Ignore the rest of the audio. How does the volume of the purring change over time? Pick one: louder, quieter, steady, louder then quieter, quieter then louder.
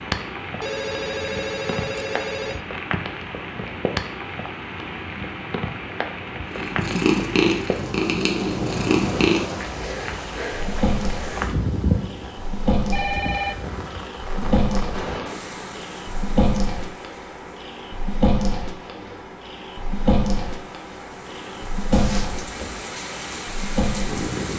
quieter.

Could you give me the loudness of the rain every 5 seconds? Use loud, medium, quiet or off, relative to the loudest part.
loud, loud, loud, medium, medium.